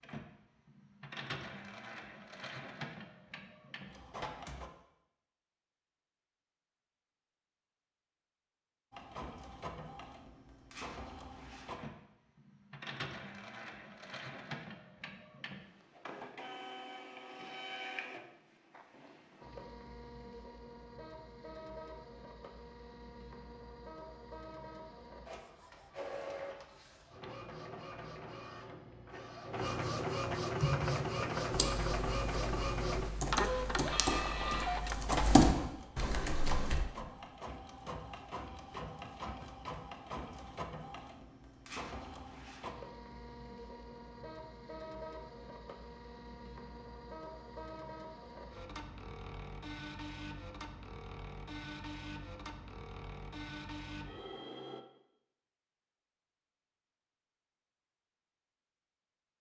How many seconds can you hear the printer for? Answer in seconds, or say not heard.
51 s.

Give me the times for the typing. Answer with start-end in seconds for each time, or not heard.
30.6-36.9.